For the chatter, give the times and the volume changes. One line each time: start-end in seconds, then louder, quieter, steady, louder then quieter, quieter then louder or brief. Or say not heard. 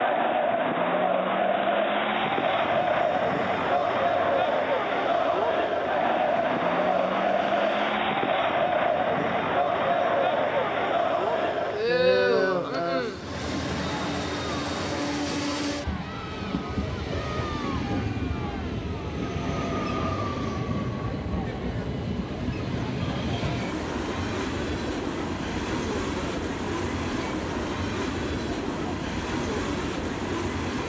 0.0-30.8 quieter.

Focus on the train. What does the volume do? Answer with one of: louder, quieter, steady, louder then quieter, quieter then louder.
louder.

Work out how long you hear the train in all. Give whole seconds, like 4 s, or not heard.
29 s.